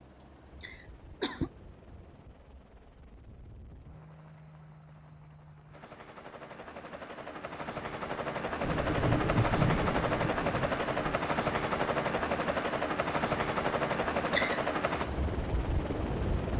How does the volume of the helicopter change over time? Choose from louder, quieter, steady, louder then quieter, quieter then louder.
louder.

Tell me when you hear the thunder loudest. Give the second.
10 s.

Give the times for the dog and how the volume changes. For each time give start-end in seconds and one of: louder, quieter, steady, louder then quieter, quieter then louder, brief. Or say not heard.
not heard.